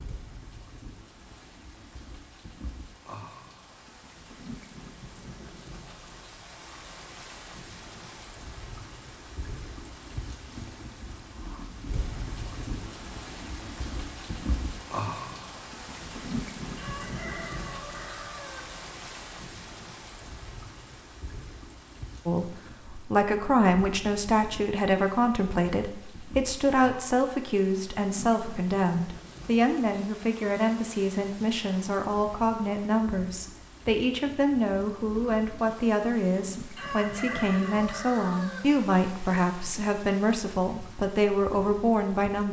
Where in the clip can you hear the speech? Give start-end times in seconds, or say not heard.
22.2-42.4.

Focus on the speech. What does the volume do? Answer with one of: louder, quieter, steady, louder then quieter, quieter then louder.
steady.